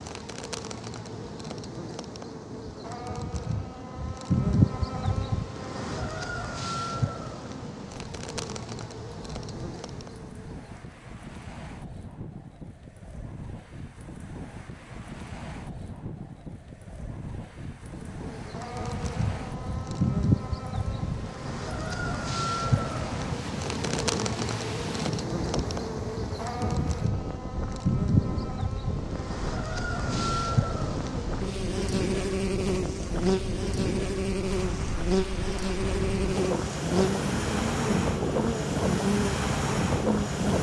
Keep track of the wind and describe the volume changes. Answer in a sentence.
The volume of the wind goes up.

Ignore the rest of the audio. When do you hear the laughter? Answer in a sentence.
You can't hear the laughter here.